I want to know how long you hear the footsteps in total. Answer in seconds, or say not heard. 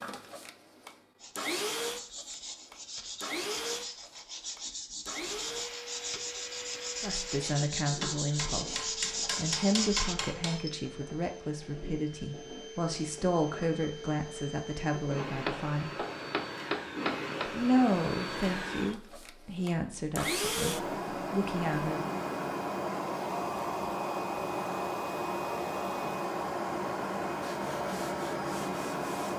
not heard.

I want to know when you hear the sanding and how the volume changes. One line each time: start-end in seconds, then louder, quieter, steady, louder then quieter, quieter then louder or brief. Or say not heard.
1.2-10.2 louder
27.4-29.3 brief.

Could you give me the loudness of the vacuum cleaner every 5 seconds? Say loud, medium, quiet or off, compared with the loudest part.
medium, medium, medium, medium, loud, loud.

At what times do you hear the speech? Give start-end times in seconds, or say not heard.
7.0-16.0, 17.4-22.1.